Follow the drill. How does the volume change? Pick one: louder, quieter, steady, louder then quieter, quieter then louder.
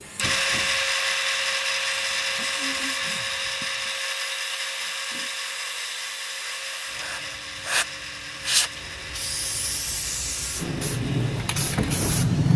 quieter.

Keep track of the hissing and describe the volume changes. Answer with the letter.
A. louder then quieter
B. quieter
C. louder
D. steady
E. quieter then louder
C.